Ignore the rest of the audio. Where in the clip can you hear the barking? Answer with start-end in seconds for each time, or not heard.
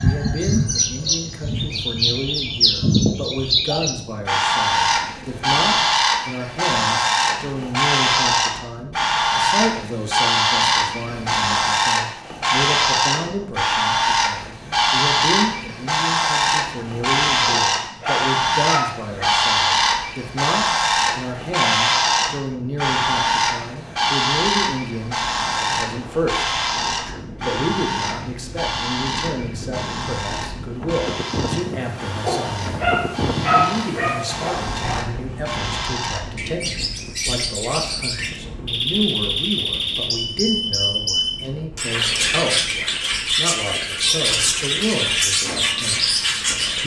17.4-19.1, 32.2-35.0.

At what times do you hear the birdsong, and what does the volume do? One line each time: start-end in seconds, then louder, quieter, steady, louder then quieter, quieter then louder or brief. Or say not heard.
0.0-46.8 quieter then louder.